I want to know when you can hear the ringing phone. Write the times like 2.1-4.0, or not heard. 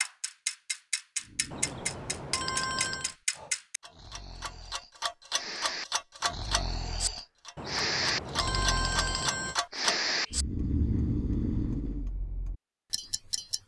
1.5-3.1, 7.5-9.6.